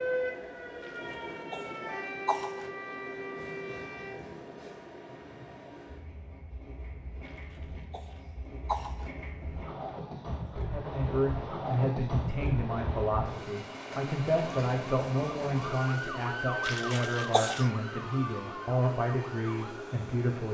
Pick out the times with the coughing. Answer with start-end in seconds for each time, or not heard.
0.8-2.7, 7.2-9.1, 16.6-17.7.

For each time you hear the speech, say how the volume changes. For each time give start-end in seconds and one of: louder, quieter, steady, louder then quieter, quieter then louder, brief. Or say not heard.
10.7-20.5 steady.